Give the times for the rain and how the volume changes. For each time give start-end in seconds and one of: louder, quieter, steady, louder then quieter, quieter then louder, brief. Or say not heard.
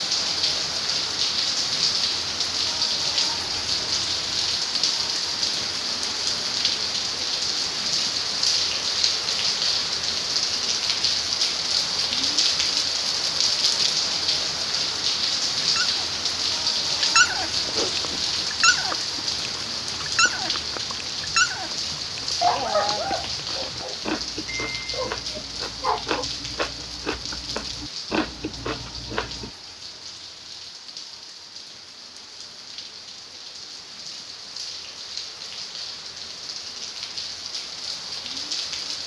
0.0-39.0 quieter.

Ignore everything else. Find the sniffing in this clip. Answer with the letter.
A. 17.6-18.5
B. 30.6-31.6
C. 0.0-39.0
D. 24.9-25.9
A.